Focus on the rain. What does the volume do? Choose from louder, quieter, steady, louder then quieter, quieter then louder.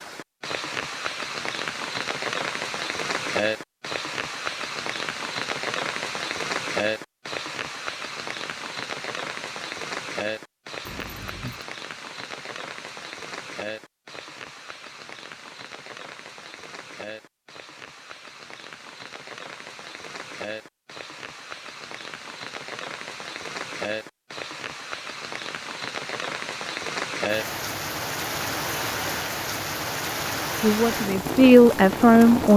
quieter then louder.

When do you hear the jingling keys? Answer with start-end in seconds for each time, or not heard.
10.8-11.7.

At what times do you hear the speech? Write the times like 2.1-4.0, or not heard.
30.6-32.5.